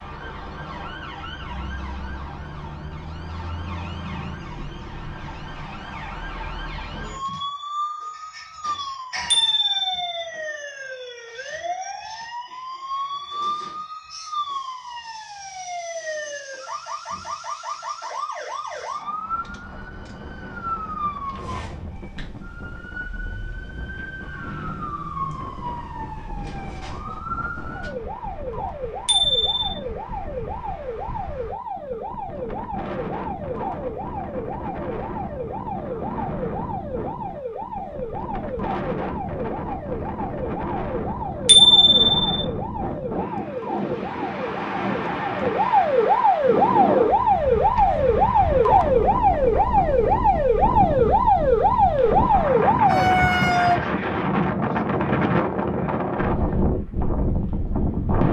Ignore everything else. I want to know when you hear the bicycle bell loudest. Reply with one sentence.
The loudest moment of the bicycle bell is at 42 seconds.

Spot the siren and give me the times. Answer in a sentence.
You can hear the siren from 0.0 to 53.8 s.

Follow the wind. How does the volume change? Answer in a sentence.
The volume of the wind goes up.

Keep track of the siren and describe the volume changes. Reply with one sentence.
The volume of the siren goes up.